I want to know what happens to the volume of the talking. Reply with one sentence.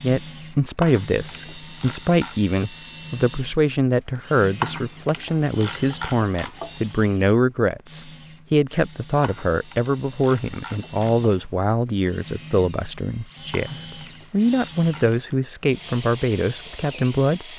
The volume of the talking stays about the same.